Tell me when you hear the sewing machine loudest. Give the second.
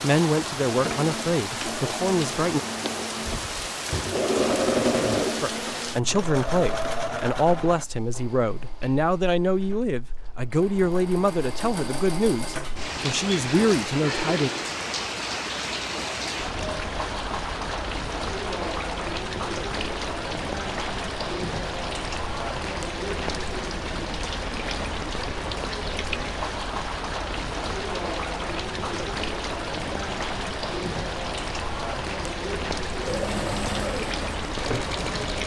5 s.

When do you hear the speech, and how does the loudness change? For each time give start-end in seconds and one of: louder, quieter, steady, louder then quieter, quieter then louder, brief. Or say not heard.
0.0-2.6 brief
5.4-14.5 steady.